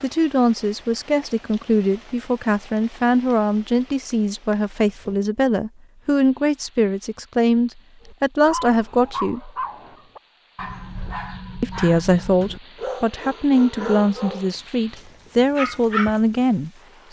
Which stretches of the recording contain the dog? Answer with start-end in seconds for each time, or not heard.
8.0-16.1.